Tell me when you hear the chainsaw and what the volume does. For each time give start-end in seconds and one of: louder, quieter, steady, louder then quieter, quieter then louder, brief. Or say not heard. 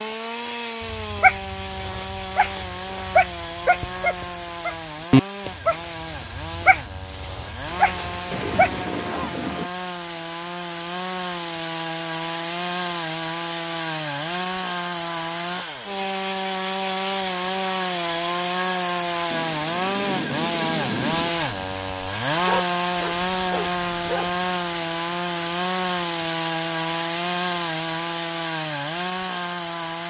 0.0-30.0 louder.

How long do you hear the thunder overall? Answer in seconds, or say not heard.
4 s.